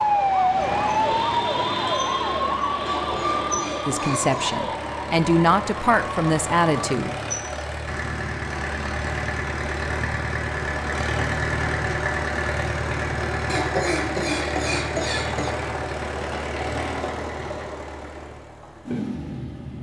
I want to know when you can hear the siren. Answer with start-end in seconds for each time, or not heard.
0.0-7.0.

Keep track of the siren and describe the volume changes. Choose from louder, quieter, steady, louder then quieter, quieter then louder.
quieter.